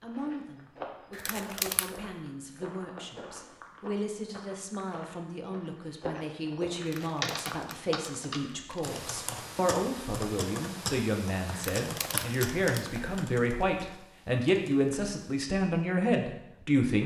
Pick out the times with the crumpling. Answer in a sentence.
The crumpling can be heard from 1.1 to 1.9 s, from 6.8 to 8.8 s and from 11.5 to 13.2 s.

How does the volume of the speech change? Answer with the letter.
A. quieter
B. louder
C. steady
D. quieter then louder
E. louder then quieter
B.